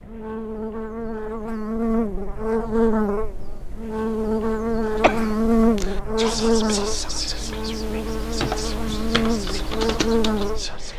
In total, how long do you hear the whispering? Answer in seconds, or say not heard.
5 s.